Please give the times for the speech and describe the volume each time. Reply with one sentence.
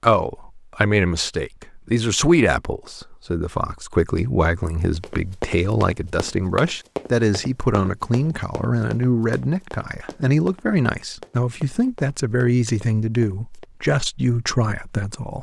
The speech can be heard from 0.0 to 15.3 s, at a steady volume.